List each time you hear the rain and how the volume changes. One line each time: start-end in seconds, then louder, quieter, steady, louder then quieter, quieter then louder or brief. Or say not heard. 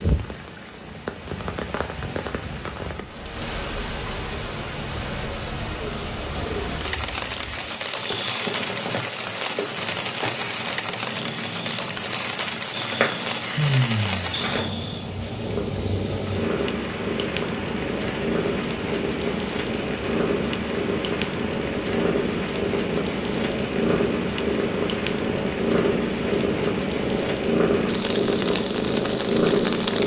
0.0-30.0 steady.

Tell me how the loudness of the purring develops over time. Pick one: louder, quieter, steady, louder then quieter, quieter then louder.
louder.